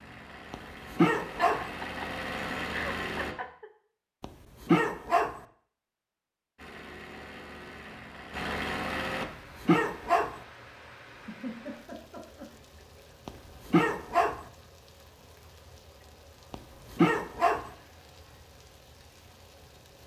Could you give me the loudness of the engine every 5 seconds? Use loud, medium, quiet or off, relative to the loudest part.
loud, loud, off, off.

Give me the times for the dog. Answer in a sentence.
You can hear the dog from 0.5 to 1.6 s, from 4.2 to 5.3 s, from 9.2 to 10.3 s, from 13.2 to 14.4 s and from 16.5 to 17.6 s.